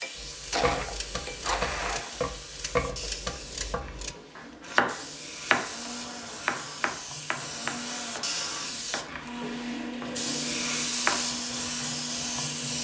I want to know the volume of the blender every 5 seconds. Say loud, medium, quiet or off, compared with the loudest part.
loud, medium, medium.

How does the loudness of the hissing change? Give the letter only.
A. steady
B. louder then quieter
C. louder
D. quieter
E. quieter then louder
C.